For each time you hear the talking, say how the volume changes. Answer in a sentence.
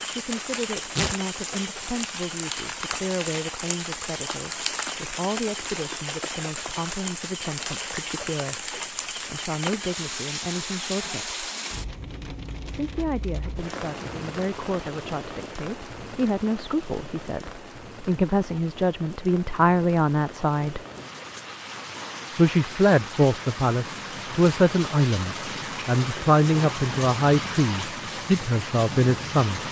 The talking can be heard from 0.1 to 11.3 s, at a steady volume; from 12.7 to 20.8 s, getting louder; and from 22.3 to 29.6 s, at a steady volume.